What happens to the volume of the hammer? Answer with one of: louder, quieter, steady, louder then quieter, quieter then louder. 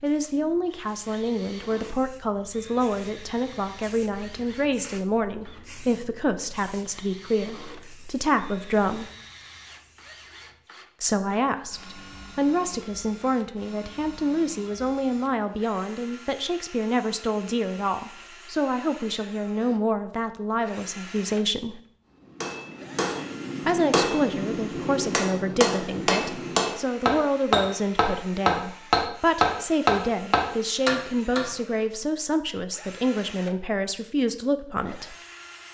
louder.